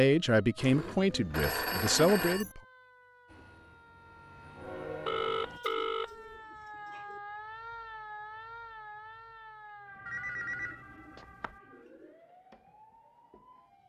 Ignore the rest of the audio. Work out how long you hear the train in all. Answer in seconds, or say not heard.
2 s.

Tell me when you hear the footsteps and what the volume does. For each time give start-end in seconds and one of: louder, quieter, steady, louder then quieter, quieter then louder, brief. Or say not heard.
not heard.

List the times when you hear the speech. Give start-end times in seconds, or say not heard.
0.0-2.6.